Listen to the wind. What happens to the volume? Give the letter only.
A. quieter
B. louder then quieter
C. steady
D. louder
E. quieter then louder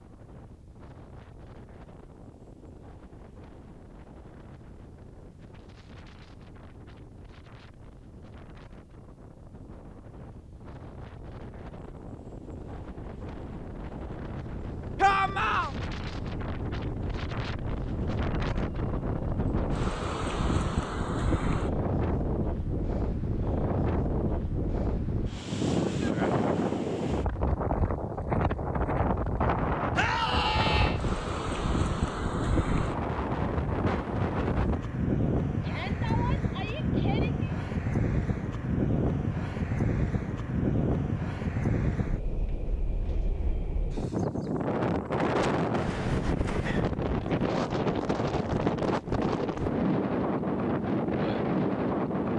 D.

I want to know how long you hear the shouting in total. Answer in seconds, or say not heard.
4 s.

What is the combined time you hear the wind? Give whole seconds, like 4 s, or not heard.
52 s.